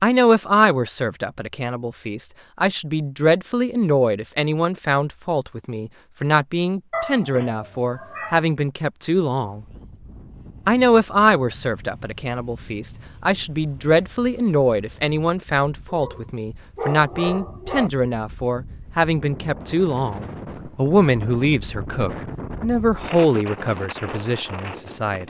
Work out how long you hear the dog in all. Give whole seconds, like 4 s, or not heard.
4 s.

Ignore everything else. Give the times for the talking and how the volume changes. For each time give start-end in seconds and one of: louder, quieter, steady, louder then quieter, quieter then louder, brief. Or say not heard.
0.0-9.7 steady
10.7-25.2 steady.